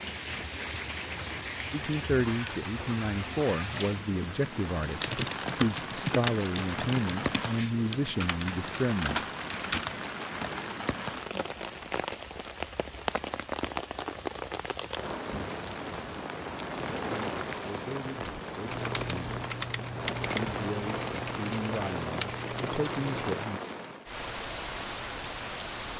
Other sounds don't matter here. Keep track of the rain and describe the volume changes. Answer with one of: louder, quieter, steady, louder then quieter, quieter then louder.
steady.